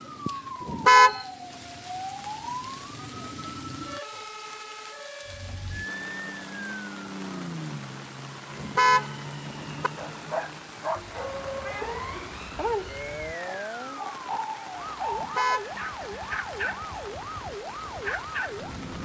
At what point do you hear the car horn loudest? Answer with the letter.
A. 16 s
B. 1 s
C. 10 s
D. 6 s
B.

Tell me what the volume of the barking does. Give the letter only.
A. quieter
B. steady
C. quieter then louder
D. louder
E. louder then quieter
A.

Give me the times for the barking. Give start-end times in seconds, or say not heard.
9.9-18.6.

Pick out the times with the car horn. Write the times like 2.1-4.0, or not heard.
0.7-1.2, 8.6-9.9, 15.2-15.7.